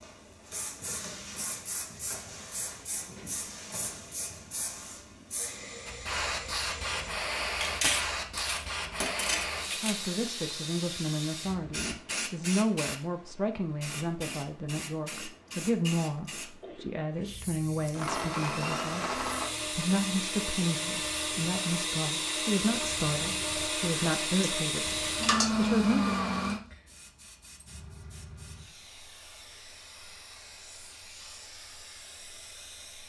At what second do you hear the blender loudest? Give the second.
26 s.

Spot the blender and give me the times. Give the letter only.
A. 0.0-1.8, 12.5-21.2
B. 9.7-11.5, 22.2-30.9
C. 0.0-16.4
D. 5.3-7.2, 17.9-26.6
D.